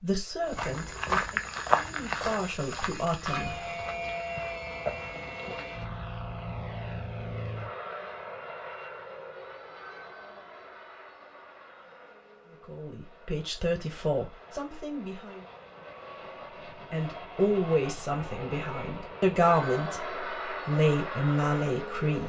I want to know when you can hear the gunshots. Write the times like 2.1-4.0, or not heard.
not heard.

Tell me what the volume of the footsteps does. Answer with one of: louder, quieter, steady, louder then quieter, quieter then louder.
quieter then louder.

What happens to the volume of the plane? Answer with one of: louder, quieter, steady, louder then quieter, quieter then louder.
quieter then louder.